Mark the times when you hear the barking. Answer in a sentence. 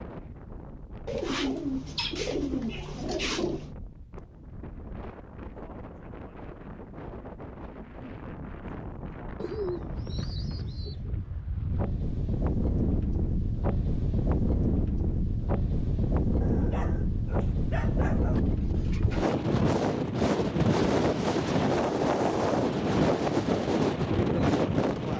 You can hear the barking from 16.4 to 18.4 s.